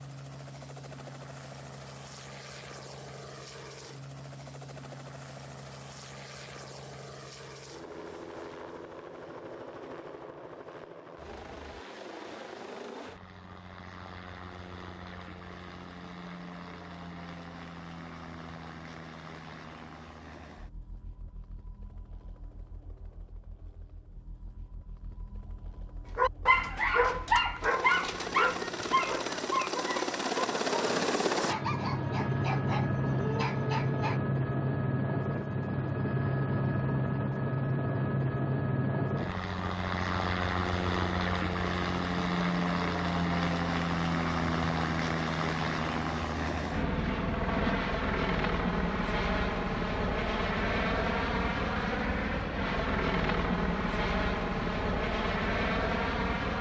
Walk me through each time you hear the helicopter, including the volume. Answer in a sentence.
The helicopter can be heard from 0.0 to 56.5 s, getting louder.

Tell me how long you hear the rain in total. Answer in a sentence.
You can't hear the rain here.